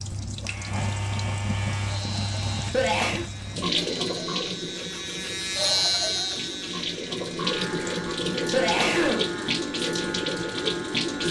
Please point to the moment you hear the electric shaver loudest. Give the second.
6 s.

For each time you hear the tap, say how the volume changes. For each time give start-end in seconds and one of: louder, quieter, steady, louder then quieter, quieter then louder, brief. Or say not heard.
0.0-11.2 quieter then louder.